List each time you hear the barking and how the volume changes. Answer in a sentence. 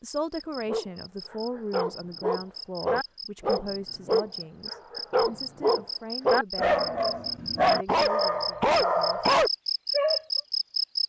The barking can be heard from 0.7 to 10.2 s, getting louder.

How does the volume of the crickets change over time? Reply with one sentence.
The loudness of the crickets goes up.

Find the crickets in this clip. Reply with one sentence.
The crickets can be heard from 0.3 to 11.0 s.